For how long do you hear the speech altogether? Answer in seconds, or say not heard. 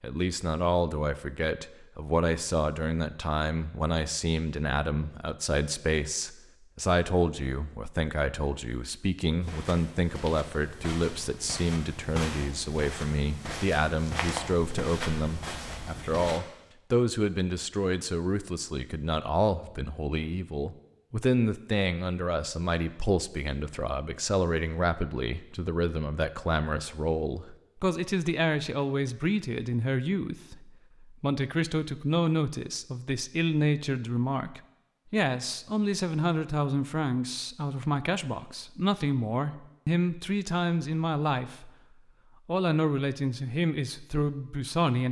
44 s.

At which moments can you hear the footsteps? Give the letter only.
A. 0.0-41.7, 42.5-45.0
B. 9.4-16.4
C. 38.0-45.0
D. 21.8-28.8
B.